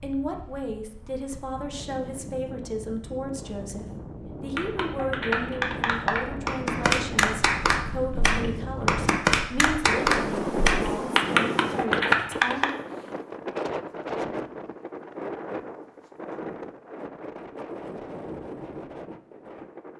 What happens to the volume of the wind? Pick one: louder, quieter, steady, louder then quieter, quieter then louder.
louder then quieter.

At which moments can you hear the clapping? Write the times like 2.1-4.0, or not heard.
4.5-12.7.